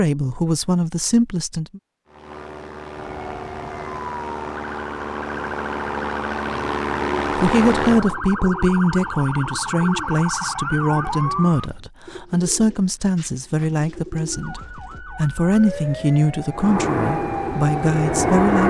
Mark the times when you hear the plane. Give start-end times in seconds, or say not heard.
2.0-8.2, 16.6-18.6.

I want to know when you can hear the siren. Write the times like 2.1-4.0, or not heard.
3.0-11.7, 14.3-18.6.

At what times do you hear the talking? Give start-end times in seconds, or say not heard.
0.0-1.8, 7.3-18.6.